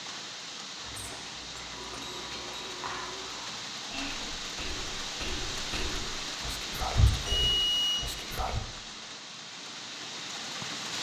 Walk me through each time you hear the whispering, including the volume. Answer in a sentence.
The whispering can be heard from 0.8 to 8.6 s, getting louder.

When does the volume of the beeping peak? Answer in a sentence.
The volume of the beeping peaks at 8 seconds.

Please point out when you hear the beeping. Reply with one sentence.
The beeping can be heard from 1.7 to 3.4 s and from 7.5 to 8.0 s.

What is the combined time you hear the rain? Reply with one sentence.
The rain can be heard for 11 seconds in total.